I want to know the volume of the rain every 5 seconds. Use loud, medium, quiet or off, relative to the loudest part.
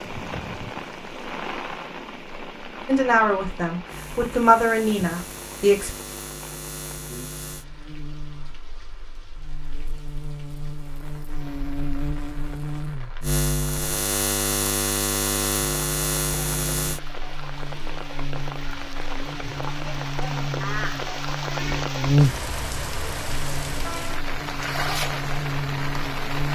medium, quiet, quiet, medium, loud, loud.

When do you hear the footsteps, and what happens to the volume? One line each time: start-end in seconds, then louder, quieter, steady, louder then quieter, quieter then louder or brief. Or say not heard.
not heard.